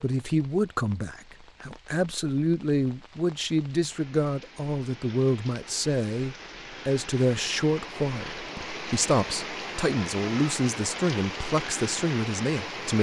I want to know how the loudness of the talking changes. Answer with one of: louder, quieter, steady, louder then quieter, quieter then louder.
steady.